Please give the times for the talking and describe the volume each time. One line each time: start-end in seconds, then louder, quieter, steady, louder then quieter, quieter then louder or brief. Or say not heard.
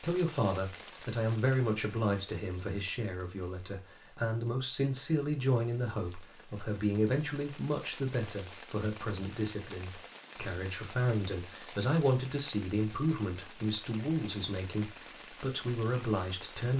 0.0-16.7 steady.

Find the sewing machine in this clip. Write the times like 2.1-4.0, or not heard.
not heard.